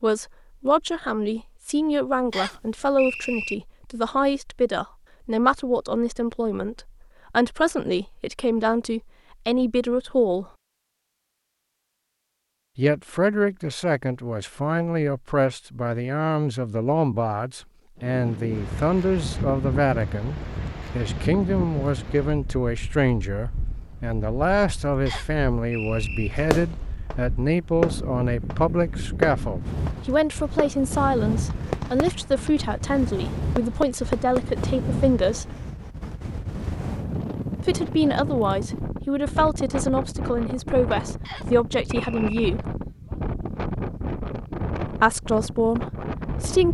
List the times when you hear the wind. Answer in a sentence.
You can hear the wind from 17.9 to 46.6 s.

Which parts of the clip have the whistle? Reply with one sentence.
The whistle can be heard from 2.3 to 3.5 s, from 25.1 to 26.3 s and from 41.2 to 42.5 s.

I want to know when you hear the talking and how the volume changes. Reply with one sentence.
The talking can be heard from 0.0 to 10.4 s, at a steady volume; from 12.8 to 35.5 s, at a steady volume; from 37.6 to 42.6 s, at a steady volume; and briefly from 44.8 to 46.6 s.